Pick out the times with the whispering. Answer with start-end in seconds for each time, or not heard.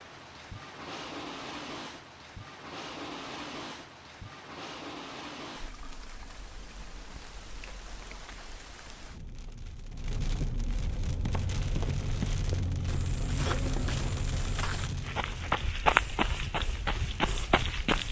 not heard.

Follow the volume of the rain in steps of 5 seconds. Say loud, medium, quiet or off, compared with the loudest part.
medium, medium, loud, medium.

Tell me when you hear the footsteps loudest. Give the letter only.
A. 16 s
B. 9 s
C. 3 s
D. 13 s
A.